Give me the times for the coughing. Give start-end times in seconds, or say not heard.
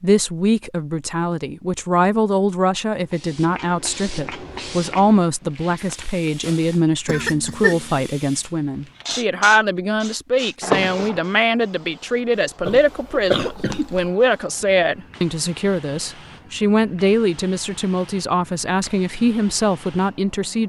7.0-8.1, 12.7-14.1.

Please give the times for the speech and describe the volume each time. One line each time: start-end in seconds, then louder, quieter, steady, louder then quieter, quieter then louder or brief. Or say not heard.
0.0-20.6 steady.